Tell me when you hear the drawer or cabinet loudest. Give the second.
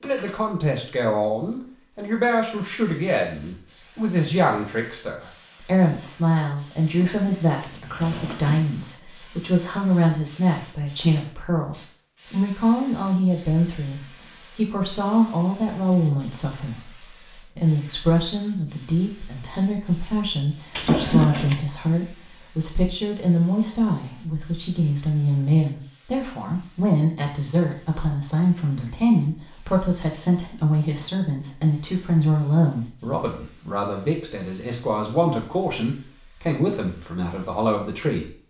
21 s.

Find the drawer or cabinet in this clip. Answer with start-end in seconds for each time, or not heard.
6.8-8.7, 20.8-21.6, 30.3-31.1.